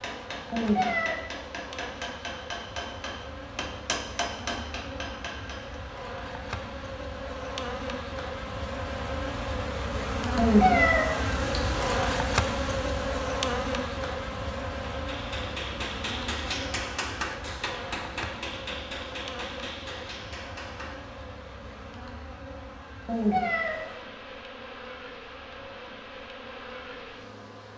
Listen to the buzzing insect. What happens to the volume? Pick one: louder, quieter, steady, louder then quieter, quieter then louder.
louder then quieter.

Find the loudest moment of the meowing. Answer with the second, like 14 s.
11 s.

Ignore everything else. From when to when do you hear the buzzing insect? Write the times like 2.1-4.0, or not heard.
0.0-27.7.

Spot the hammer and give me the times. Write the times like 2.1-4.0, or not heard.
0.0-5.8, 14.9-20.9.